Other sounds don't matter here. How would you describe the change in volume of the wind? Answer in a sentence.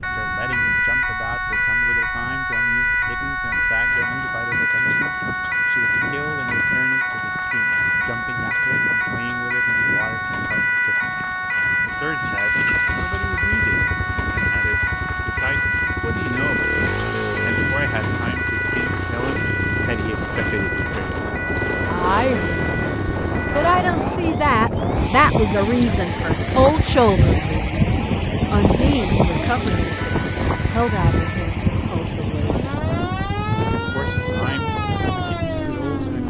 The loudness of the wind goes up.